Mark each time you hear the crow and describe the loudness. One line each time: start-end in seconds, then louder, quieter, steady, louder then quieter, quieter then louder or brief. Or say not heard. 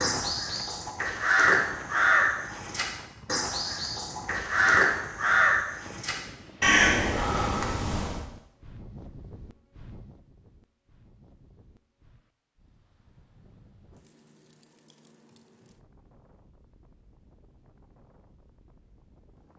0.0-8.2 steady.